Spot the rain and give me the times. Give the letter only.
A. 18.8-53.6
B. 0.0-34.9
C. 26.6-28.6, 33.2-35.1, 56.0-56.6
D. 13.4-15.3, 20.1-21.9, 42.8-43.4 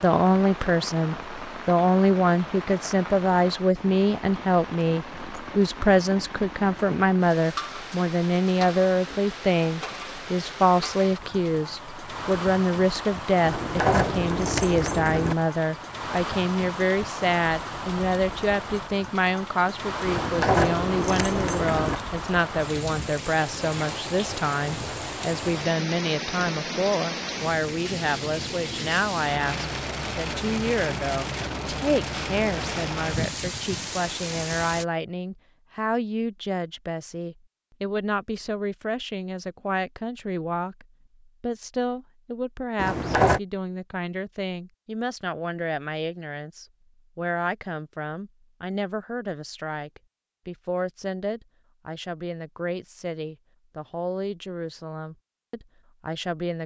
B.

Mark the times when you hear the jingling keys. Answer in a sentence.
You can hear the jingling keys from 13.4 to 15.3 s, from 20.1 to 21.9 s and from 42.8 to 43.4 s.